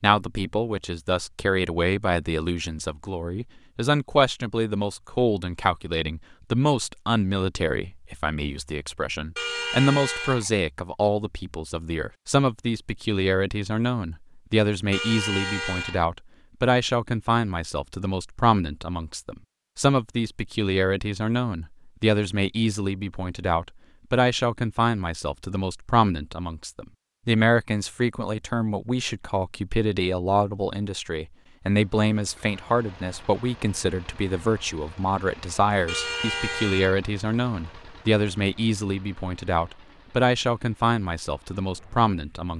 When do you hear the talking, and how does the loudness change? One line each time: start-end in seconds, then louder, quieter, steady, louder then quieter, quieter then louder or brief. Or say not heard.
0.0-42.5 steady.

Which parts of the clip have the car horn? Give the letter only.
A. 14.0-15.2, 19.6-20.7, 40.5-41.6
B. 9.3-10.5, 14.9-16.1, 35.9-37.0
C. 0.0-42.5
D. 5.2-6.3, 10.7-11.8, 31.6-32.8
B.